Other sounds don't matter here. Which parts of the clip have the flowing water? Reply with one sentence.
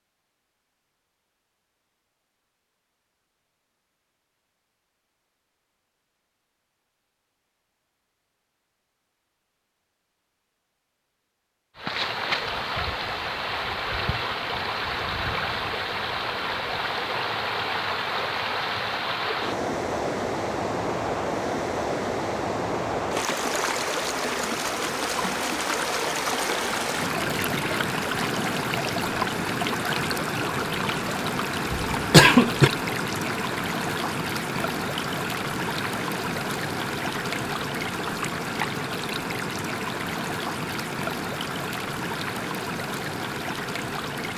The flowing water can be heard from 11.8 to 44.3 s.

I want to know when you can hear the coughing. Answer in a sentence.
You can hear the coughing from 31.8 to 32.7 s.